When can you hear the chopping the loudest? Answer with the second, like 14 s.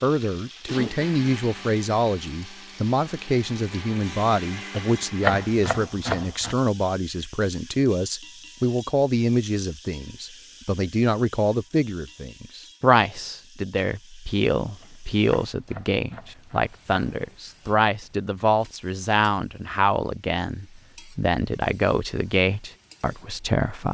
5 s.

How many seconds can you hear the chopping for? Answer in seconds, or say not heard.
4 s.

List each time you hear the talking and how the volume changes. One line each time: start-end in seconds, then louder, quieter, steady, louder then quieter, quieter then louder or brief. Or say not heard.
0.0-23.9 steady.